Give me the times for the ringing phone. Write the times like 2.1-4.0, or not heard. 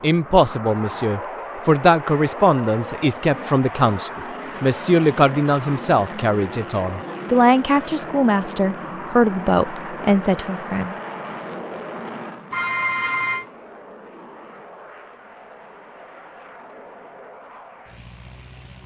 12.5-13.4.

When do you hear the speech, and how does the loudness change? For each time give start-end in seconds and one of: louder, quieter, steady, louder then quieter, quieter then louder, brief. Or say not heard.
0.0-10.9 steady.